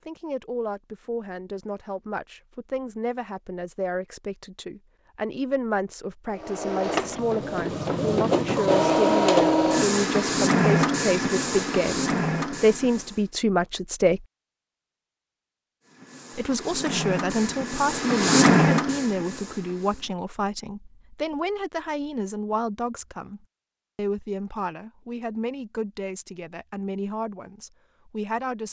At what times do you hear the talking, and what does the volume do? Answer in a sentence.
You can hear the talking from 0.1 to 14.2 s, getting louder; and from 16.4 to 28.6 s, getting quieter.